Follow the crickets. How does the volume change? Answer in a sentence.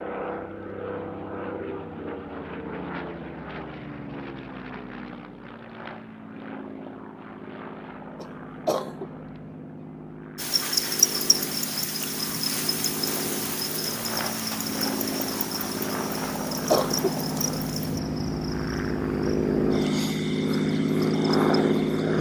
The loudness of the crickets goes down.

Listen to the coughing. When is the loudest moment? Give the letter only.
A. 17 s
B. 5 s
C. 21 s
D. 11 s
A.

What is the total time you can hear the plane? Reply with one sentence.
You can hear the plane for 22 seconds altogether.